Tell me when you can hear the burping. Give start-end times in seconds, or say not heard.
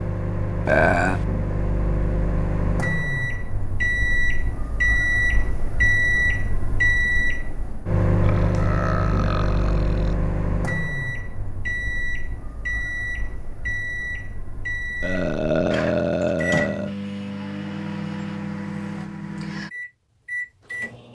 0.7-1.2, 8.2-10.2, 15.0-16.9.